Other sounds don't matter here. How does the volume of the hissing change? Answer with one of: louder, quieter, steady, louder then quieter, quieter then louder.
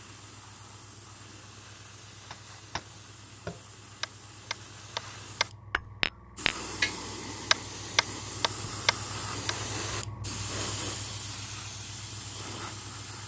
louder.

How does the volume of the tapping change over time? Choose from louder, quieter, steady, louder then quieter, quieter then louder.
louder.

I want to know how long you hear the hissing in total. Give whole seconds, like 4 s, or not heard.
13 s.